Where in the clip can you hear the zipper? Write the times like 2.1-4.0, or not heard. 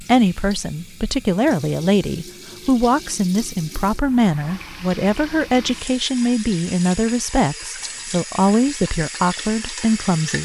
not heard.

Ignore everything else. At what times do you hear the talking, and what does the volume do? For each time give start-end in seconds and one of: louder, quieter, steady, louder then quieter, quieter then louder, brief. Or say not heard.
0.0-10.4 steady.